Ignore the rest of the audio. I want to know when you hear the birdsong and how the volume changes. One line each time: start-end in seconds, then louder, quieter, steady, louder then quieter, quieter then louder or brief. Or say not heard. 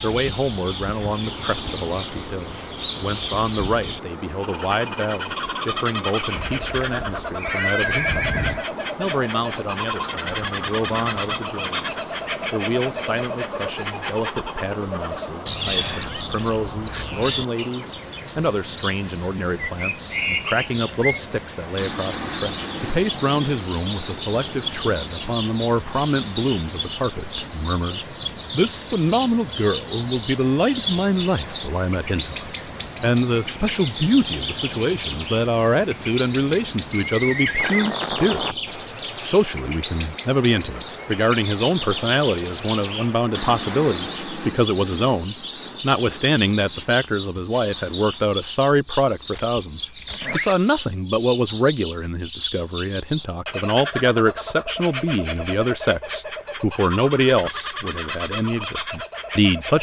0.0-59.7 steady.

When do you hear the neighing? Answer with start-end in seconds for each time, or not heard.
6.3-8.7, 37.0-38.0, 49.3-50.5.